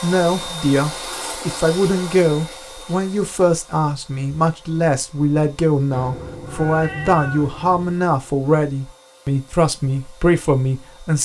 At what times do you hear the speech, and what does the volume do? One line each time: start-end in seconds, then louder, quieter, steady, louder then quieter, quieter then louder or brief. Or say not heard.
0.0-11.2 steady.